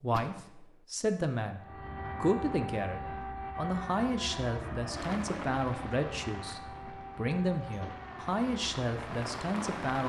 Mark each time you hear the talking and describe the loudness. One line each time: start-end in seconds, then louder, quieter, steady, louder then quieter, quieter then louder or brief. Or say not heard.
0.0-1.6 brief
2.2-10.0 steady.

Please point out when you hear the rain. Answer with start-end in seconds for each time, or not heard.
4.9-10.0.